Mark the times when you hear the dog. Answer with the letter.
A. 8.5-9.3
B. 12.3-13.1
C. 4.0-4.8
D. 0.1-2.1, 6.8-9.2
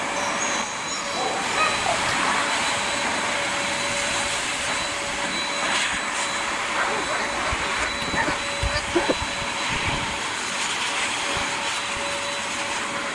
D.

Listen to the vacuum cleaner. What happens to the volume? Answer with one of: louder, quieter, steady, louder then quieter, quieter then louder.
steady.